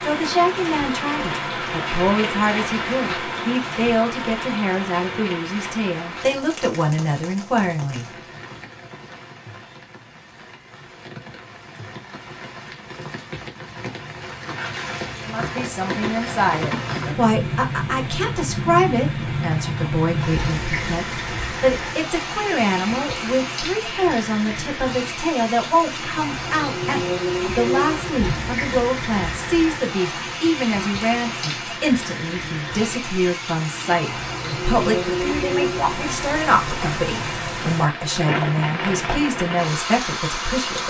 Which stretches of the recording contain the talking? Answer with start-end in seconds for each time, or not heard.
0.0-8.1, 15.2-40.8.